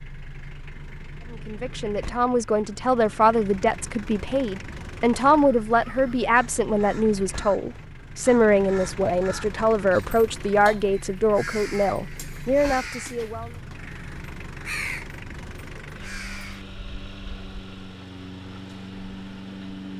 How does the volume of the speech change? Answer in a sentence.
The loudness of the speech stays about the same.